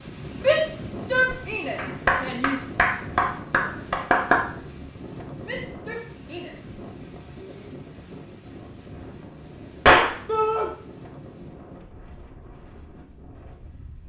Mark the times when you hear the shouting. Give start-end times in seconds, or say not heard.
0.3-2.6, 5.5-7.7, 10.2-10.7.